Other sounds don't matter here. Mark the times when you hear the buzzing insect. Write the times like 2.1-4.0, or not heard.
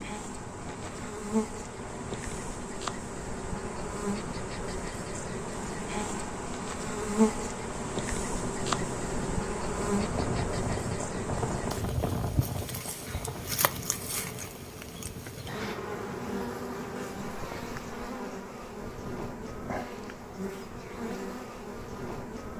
0.0-22.5.